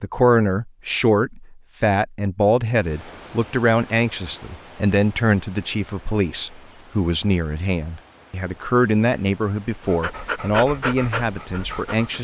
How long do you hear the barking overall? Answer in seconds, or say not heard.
2 s.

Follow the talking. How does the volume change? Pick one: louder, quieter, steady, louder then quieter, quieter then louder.
steady.